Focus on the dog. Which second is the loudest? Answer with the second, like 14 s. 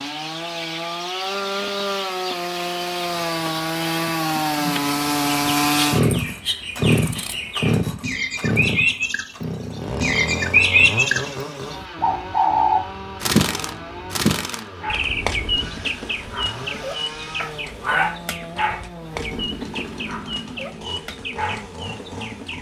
18 s.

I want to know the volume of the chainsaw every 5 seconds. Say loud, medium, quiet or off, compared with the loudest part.
loud, loud, medium, quiet, quiet.